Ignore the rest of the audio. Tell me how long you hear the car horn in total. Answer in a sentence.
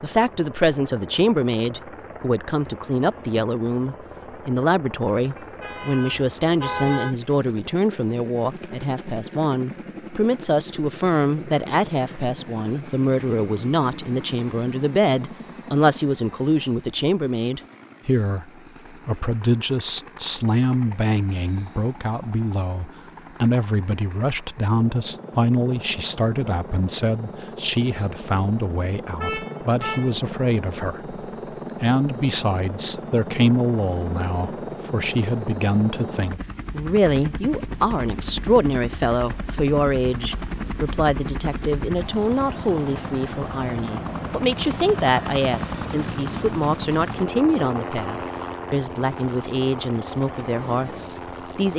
You can hear the car horn for 3 seconds altogether.